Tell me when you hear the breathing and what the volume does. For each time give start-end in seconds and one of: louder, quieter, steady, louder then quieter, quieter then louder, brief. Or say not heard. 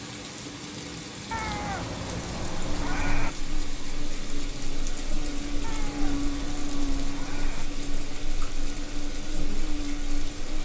not heard.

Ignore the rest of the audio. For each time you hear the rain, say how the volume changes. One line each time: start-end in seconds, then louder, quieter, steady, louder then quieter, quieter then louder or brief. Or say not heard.
0.0-10.5 steady.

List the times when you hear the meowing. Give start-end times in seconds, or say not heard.
1.3-3.3, 5.6-7.7.